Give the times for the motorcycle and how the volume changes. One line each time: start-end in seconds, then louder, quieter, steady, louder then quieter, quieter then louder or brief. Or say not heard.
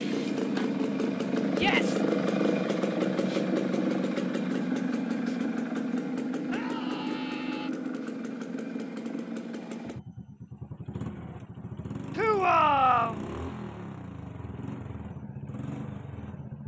0.0-16.6 quieter.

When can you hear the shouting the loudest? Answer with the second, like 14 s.
13 s.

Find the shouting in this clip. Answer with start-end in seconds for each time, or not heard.
1.5-2.0, 6.5-7.7, 12.2-13.2.